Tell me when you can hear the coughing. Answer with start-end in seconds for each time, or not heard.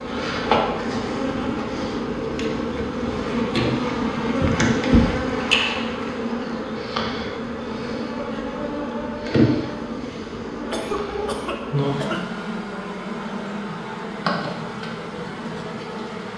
10.7-12.3.